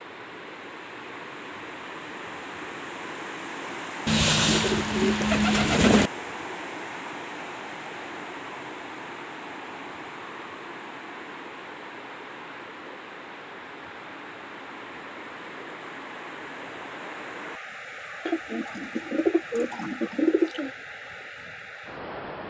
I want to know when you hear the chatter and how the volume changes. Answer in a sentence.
The chatter can't be heard in this clip.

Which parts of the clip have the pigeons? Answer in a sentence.
You can hear the pigeons from 4.0 to 6.1 s and from 18.2 to 20.7 s.